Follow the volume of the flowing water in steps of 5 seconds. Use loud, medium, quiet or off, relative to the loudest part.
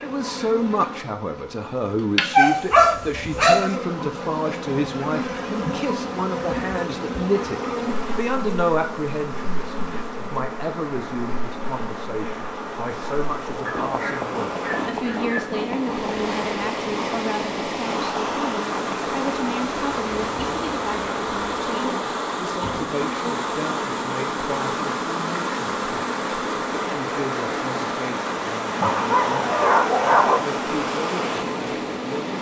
off, medium, medium, loud, loud, loud, loud.